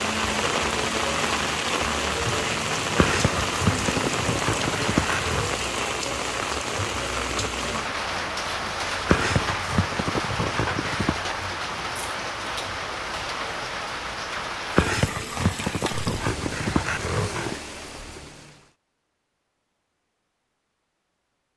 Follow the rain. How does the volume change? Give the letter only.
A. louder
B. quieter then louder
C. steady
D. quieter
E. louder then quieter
D.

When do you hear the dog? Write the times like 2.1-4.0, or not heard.
3.0-5.5, 9.1-11.2, 14.8-17.6.